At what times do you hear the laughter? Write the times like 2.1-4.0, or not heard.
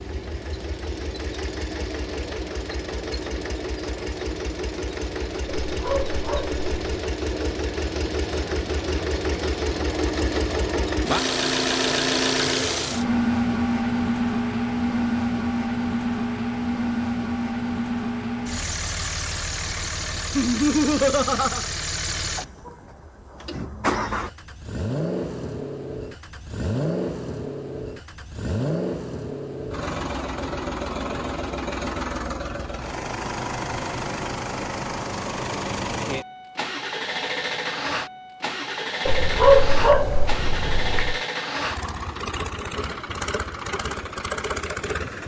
20.4-21.7.